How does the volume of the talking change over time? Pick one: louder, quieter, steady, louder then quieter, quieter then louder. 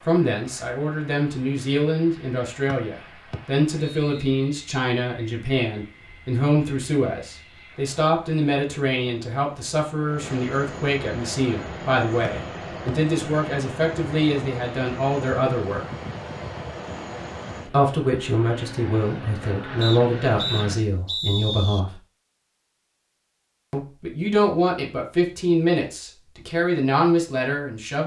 steady.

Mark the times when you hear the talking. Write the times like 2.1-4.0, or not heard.
0.0-15.8, 17.6-22.0, 23.7-28.0.